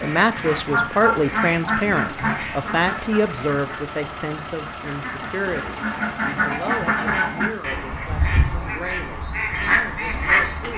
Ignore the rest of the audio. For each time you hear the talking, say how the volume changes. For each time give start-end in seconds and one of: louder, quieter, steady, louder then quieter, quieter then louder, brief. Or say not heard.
0.0-10.7 quieter.